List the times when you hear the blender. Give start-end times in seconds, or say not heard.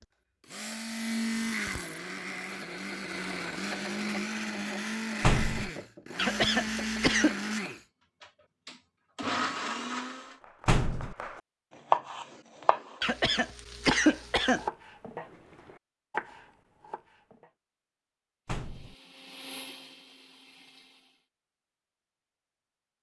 0.0-10.4, 18.5-21.2.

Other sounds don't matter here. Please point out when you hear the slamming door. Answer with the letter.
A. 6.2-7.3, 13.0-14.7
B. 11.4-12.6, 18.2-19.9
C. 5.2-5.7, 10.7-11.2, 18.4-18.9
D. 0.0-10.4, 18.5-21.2
C.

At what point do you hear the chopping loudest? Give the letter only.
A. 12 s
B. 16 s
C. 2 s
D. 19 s
A.